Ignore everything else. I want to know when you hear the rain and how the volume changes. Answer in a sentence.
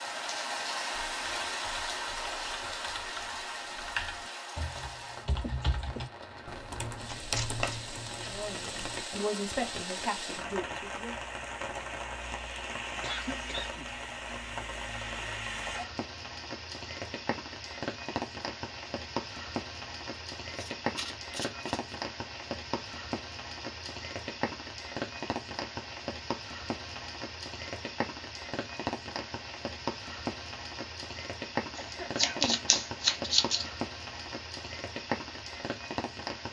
You can hear the rain from 0.0 to 36.4 s, at a steady volume.